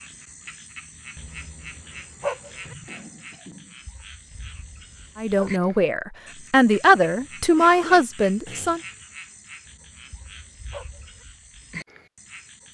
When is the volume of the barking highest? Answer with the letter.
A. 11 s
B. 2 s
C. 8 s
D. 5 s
B.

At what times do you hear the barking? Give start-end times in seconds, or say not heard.
1.1-2.8, 4.3-5.7, 9.7-11.2.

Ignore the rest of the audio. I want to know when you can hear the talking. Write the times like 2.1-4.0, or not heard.
5.2-8.8.